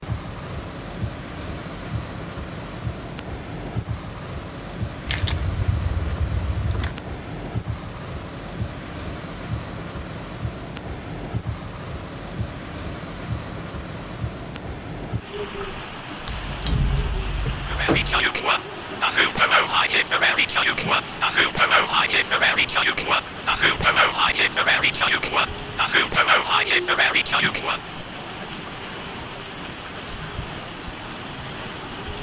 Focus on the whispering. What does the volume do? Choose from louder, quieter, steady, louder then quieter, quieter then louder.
steady.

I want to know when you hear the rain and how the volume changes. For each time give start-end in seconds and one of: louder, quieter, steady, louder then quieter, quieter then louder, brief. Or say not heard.
0.0-32.1 steady.